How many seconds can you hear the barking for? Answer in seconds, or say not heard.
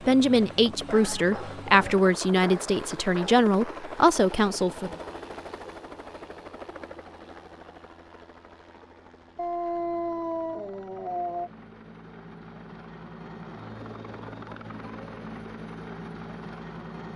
5 s.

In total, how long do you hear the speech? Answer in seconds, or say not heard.
5 s.